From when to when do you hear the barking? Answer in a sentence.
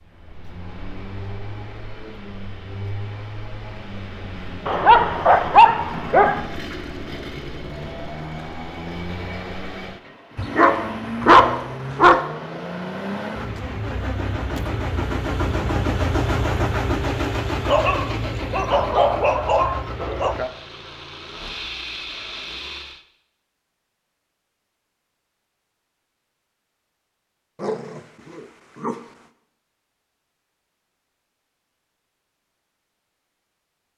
The barking can be heard from 4.7 to 6.4 s, from 10.3 to 12.2 s, from 17.6 to 20.4 s and from 27.6 to 29.0 s.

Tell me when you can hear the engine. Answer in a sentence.
The engine can be heard from 0.0 to 23.1 s.